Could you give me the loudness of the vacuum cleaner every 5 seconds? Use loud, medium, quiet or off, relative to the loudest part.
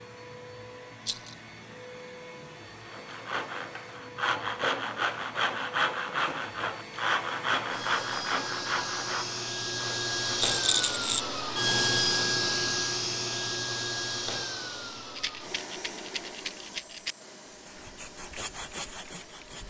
quiet, medium, loud, quiet.